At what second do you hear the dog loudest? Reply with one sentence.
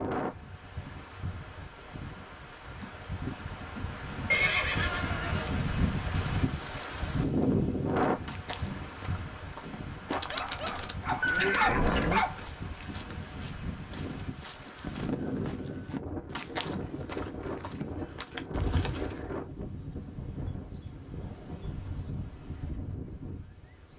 The loudest moment of the dog is at 12 seconds.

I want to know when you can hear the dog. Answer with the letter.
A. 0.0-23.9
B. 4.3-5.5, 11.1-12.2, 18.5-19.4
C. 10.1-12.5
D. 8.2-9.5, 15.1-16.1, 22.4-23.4
C.